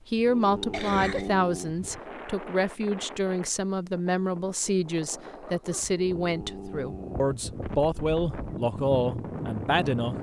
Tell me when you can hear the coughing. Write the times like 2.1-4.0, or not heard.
0.7-1.3, 5.2-5.9.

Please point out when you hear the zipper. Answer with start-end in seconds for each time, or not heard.
not heard.